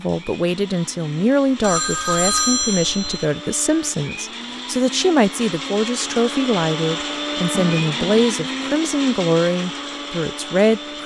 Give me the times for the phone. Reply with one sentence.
The phone can be heard from 1.6 to 3.2 s and from 7.5 to 8.3 s.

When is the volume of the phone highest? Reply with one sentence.
The loudest moment of the phone is at 2 seconds.